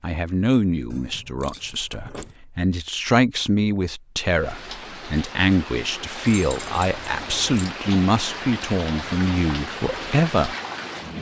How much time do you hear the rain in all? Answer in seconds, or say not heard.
7 s.